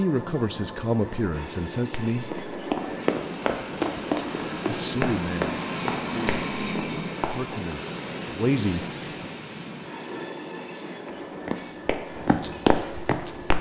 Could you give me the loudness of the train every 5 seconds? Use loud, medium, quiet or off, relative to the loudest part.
loud, loud, medium.